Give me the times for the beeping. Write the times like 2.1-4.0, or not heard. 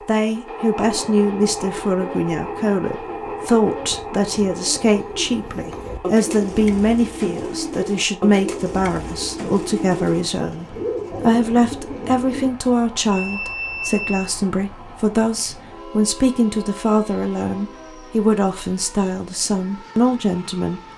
13.1-14.3.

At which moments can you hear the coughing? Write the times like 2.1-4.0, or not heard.
not heard.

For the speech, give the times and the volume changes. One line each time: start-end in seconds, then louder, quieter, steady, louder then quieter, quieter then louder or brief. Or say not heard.
0.1-20.8 steady.